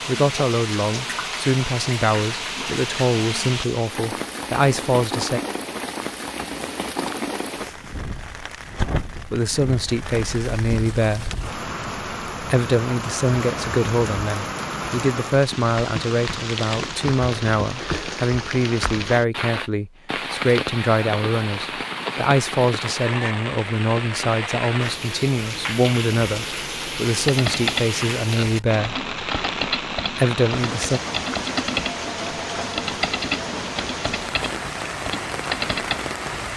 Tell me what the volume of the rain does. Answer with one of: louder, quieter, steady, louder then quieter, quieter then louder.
steady.